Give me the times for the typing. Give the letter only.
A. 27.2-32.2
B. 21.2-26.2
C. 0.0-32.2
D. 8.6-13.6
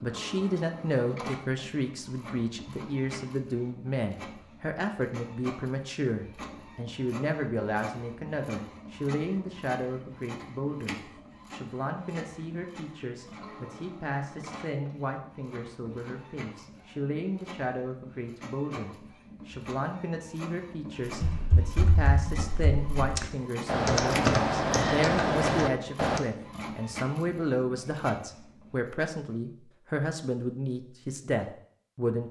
B.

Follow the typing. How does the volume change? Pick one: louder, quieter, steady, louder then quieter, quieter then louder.
louder.